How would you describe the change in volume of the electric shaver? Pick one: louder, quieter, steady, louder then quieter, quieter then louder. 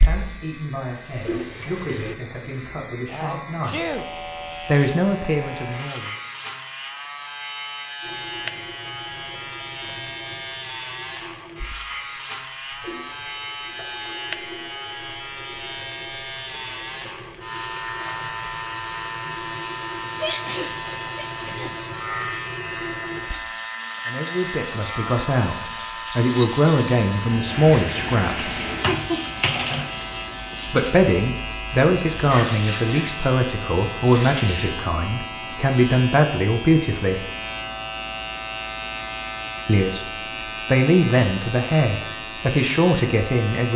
steady.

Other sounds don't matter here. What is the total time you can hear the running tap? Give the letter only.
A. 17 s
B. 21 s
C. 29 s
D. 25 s
C.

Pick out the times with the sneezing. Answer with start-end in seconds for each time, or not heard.
3.0-4.1, 20.2-21.8, 32.2-33.2.